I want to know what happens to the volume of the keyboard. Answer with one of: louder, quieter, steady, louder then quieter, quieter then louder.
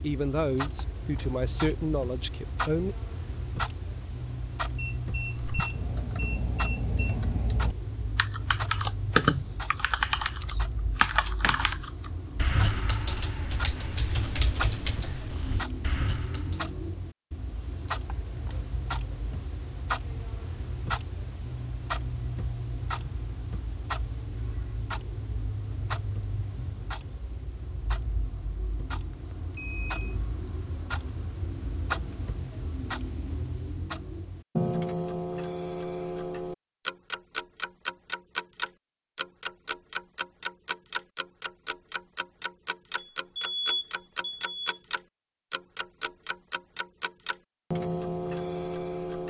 louder then quieter.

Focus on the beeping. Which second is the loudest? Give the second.
44 s.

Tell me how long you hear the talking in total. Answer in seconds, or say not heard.
3 s.